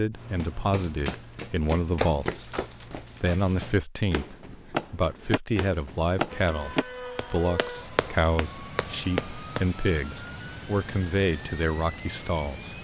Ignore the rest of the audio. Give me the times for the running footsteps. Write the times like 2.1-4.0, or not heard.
0.1-9.7.